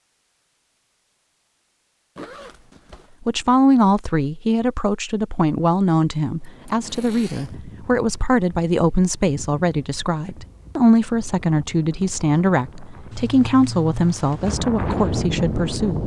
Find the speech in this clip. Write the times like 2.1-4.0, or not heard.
3.2-16.0.